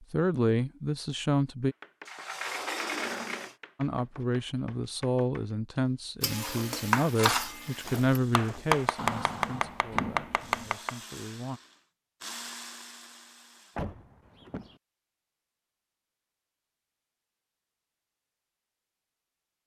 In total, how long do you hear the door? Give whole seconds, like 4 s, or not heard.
4 s.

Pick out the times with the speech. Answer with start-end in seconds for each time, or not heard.
0.0-1.8, 3.8-11.6.